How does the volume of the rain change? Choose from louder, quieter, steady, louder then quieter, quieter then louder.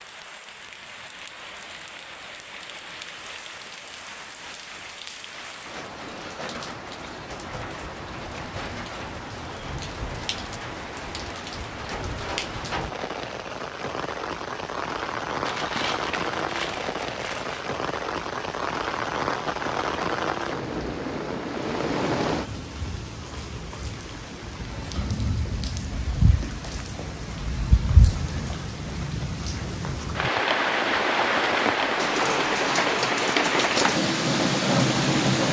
louder.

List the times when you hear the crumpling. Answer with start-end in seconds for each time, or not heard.
15.4-17.6.